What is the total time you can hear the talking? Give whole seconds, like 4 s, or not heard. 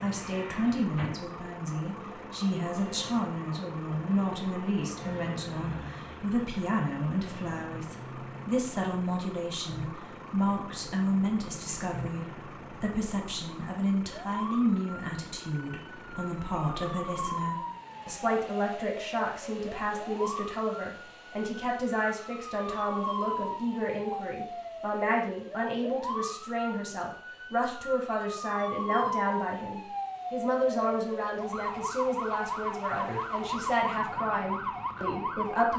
36 s.